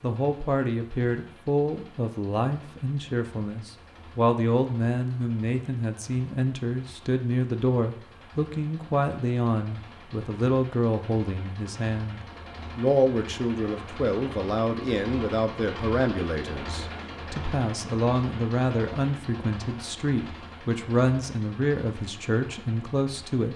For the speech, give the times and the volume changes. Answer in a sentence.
The speech can be heard from 0.0 to 23.5 s, at a steady volume.